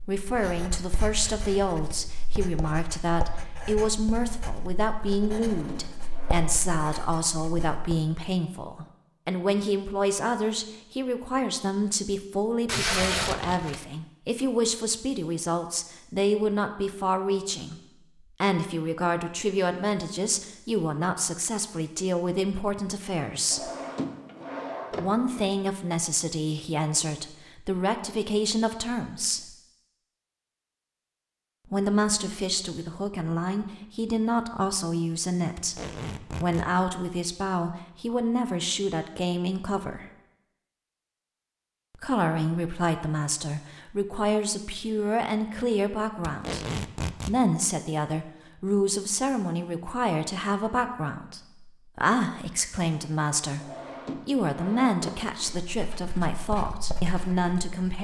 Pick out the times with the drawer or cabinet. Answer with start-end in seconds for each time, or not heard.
5.2-6.5, 23.5-25.4, 53.6-55.5.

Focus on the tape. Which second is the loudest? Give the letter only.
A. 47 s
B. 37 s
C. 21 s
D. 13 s
D.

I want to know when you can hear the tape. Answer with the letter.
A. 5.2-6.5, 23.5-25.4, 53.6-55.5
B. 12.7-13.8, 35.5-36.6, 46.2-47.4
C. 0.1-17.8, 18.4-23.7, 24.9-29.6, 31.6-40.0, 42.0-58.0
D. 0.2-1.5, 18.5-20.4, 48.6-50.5
B.